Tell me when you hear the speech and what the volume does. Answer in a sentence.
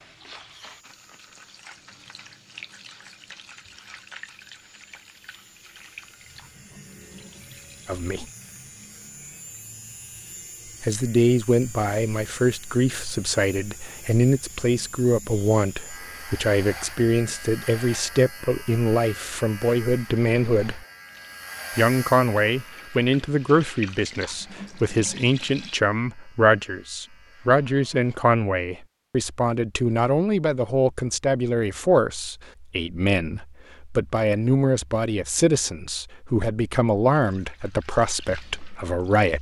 The speech can be heard briefly from 7.8 to 8.2 s; from 10.8 to 20.9 s, at a steady volume; and from 21.8 to 39.3 s, at a steady volume.